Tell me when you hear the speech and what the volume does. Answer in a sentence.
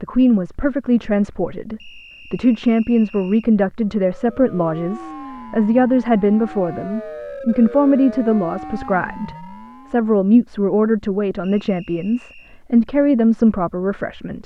You can hear the speech from 0.0 to 14.4 s, at a steady volume.